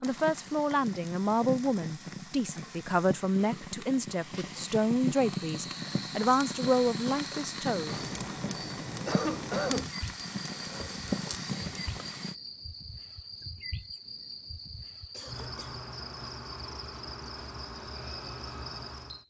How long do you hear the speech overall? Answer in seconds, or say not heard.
8 s.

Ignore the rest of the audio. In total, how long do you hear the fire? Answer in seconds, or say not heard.
12 s.